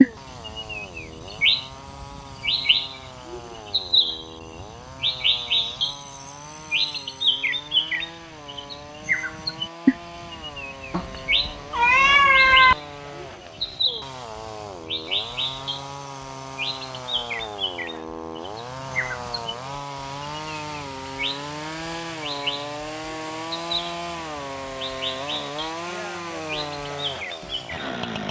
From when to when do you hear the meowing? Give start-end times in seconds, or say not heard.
10.9-12.8.